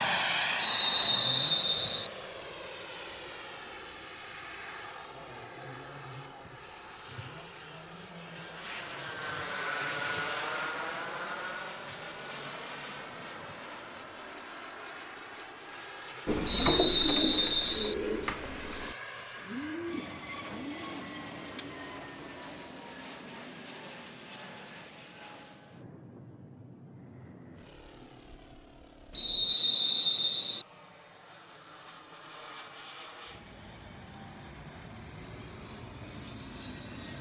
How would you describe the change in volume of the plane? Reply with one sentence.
The volume of the plane goes down.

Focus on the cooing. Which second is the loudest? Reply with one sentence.
The loudest moment of the cooing is at 17 seconds.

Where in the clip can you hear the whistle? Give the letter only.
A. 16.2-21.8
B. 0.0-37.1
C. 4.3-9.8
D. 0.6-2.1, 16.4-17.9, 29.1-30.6
D.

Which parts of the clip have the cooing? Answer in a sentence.
You can hear the cooing from 16.2 to 21.8 s.